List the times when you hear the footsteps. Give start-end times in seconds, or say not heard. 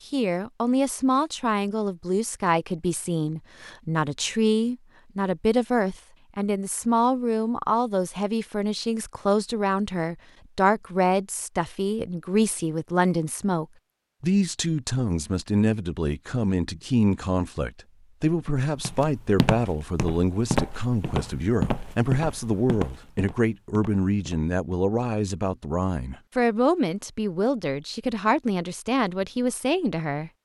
18.4-24.8.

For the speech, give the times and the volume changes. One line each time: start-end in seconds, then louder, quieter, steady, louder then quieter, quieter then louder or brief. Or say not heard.
0.1-30.3 steady.